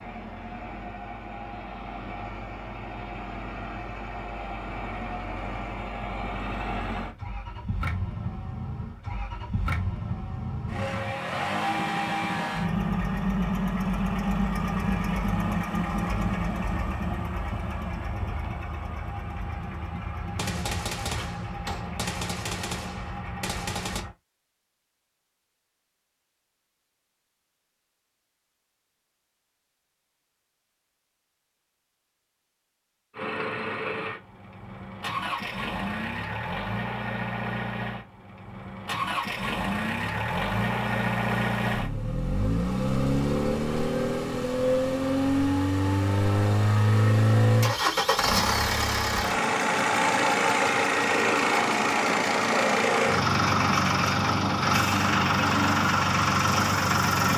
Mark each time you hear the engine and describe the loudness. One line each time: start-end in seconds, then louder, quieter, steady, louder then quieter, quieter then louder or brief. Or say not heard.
0.0-24.1 louder then quieter
33.1-57.3 louder.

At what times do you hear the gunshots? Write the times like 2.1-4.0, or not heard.
20.4-24.0.